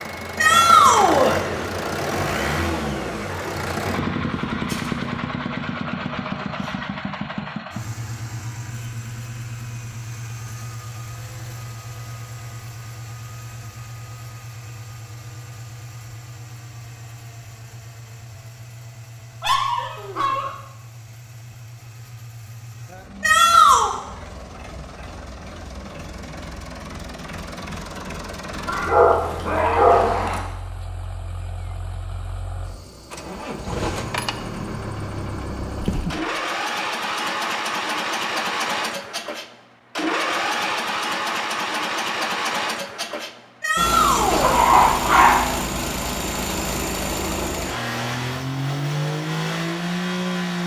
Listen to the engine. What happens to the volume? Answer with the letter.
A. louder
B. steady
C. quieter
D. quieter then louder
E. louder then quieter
D.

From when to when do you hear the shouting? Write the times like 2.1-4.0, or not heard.
0.3-1.4, 23.2-23.9, 43.6-44.6.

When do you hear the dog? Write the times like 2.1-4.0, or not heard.
3.4-5.2, 19.4-20.5, 28.6-30.4, 44.3-45.5.